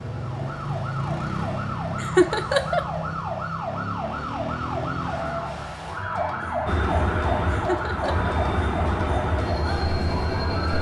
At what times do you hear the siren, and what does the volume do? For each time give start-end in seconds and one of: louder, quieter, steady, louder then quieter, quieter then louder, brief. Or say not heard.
0.0-10.7 steady.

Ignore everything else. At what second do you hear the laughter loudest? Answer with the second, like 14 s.
2 s.